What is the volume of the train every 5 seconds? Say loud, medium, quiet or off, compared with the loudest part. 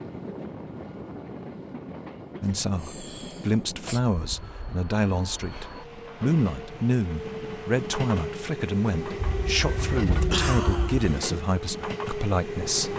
medium, loud, loud.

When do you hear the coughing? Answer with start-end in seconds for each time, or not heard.
2.4-4.0, 9.2-11.2.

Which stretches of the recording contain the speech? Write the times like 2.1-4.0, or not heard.
2.4-12.9.